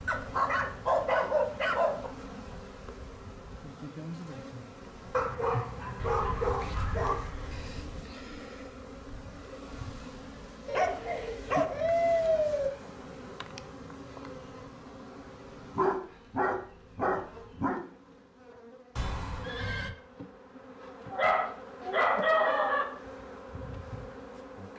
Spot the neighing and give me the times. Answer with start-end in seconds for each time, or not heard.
6.0-8.0, 18.9-19.9.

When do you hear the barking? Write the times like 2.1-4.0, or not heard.
0.1-2.1, 5.1-7.2, 10.7-12.7, 15.8-17.8, 21.1-22.9.